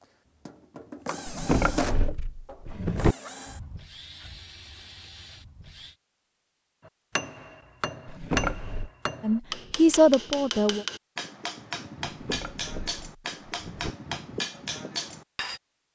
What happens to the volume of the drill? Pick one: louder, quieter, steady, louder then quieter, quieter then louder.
louder then quieter.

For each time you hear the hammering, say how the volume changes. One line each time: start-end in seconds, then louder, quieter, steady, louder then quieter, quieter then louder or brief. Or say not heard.
6.8-15.6 steady.